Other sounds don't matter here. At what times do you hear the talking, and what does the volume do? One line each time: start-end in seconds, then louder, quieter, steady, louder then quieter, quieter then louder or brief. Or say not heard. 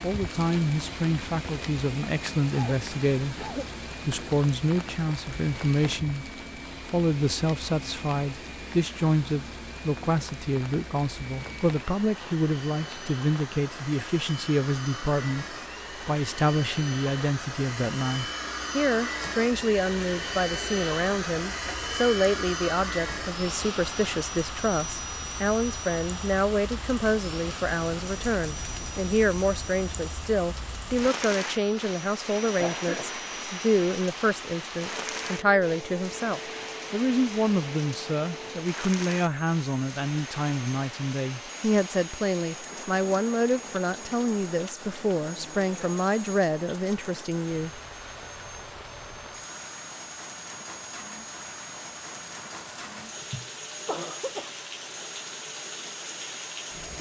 0.0-47.7 steady.